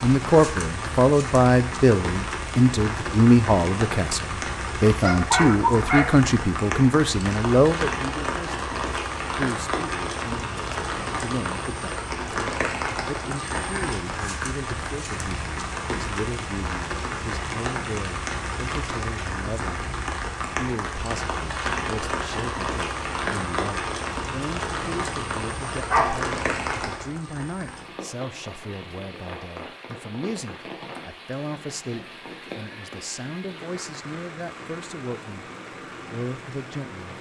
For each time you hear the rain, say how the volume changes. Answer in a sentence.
The rain can be heard from 0.0 to 37.1 s, getting quieter.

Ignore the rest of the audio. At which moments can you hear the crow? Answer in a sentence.
You can't hear the crow here.